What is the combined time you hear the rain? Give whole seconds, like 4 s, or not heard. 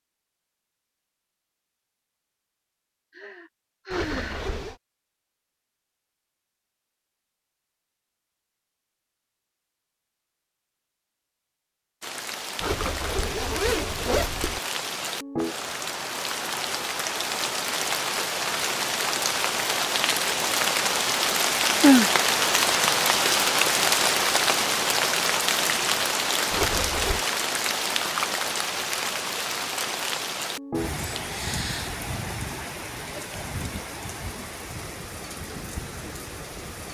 25 s.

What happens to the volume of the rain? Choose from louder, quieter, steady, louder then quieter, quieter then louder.
louder then quieter.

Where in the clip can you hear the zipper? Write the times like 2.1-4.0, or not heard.
3.9-4.8, 12.6-14.6, 26.5-27.2.